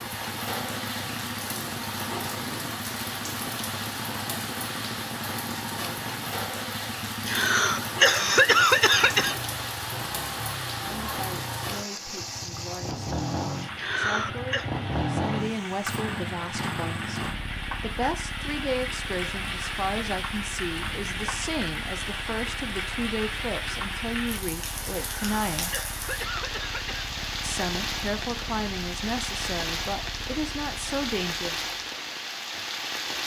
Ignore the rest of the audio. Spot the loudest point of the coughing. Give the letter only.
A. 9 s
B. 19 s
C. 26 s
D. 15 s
A.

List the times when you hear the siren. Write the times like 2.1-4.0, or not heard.
not heard.